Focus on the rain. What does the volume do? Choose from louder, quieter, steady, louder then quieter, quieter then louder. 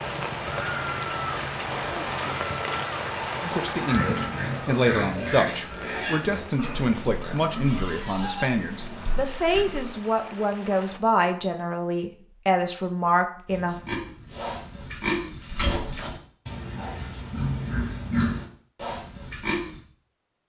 quieter.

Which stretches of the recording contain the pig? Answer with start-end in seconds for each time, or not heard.
3.8-9.9, 13.5-19.8.